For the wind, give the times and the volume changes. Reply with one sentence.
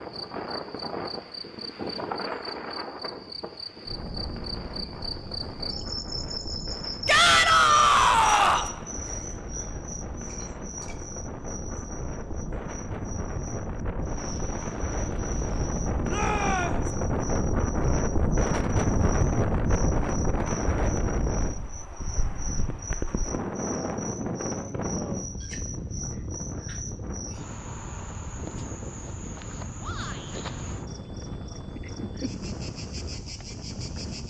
The wind can be heard from 0.0 to 34.2 s, getting louder then quieter.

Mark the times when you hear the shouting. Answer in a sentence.
The shouting can be heard from 7.0 to 8.7 s, from 16.1 to 16.9 s and from 29.8 to 30.4 s.